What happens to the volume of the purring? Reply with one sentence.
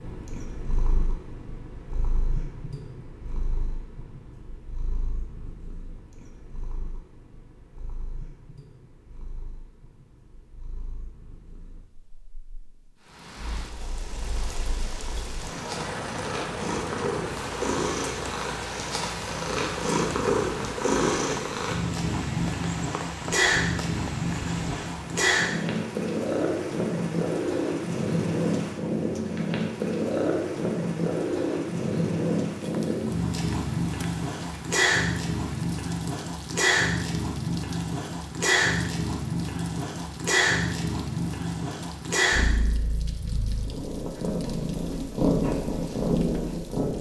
The loudness of the purring goes up.